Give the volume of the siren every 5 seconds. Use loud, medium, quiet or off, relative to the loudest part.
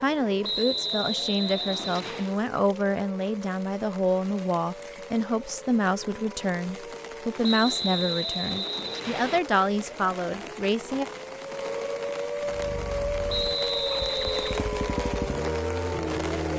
medium, medium, loud, loud.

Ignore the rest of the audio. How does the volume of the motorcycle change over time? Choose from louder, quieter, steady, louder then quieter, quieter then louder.
louder.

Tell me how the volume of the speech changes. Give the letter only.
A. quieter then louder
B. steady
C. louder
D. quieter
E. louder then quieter
B.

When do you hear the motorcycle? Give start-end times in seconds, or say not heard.
12.4-16.5.